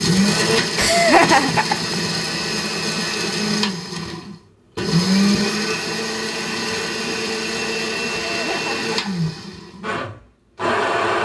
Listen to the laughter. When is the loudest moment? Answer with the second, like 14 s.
1 s.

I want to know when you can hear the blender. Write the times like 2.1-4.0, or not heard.
0.0-11.2.